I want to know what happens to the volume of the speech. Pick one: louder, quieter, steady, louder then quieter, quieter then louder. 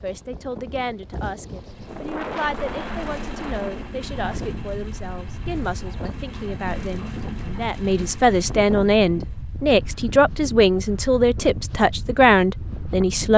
louder.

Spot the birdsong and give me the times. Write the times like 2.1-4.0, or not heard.
not heard.